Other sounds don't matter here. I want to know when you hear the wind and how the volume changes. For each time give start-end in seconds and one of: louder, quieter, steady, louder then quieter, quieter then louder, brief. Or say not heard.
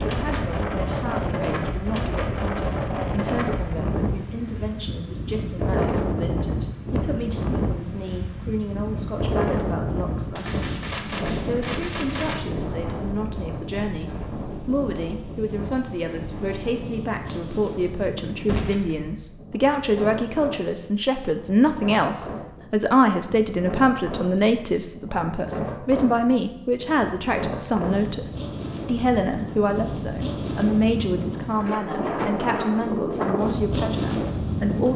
0.0-34.9 quieter then louder.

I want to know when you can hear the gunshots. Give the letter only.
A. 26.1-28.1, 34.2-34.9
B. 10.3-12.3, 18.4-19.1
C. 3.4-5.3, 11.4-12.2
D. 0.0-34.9
B.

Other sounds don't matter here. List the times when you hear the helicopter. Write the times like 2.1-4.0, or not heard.
not heard.